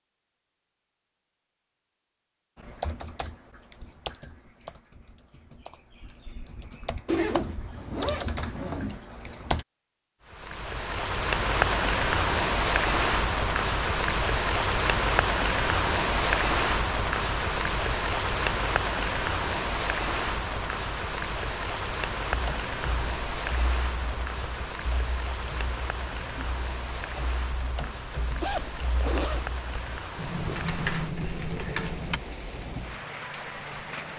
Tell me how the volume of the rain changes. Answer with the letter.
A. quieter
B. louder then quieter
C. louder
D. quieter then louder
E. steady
A.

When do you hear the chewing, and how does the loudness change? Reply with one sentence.
The chewing can't be heard in this clip.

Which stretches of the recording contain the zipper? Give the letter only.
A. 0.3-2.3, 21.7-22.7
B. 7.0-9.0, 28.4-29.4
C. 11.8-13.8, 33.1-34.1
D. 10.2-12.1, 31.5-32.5
B.